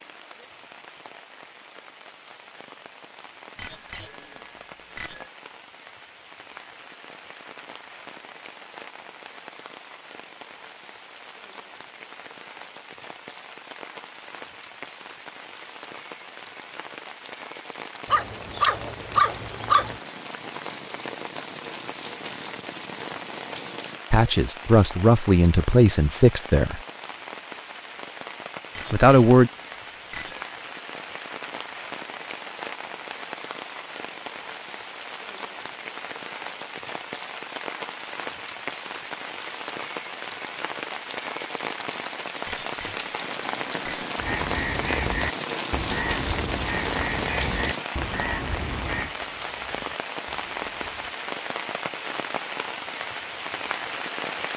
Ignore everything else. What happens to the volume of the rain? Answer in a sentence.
The volume of the rain goes up.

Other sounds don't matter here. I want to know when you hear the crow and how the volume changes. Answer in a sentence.
You can hear the crow from 44.1 to 51.1 s, getting quieter.